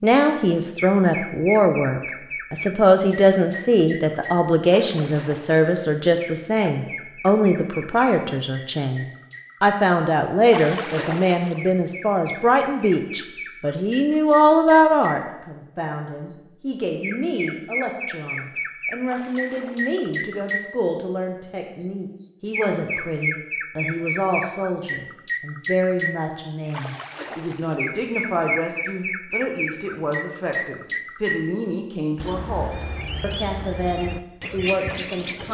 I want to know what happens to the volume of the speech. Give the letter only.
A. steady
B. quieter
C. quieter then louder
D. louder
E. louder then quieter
B.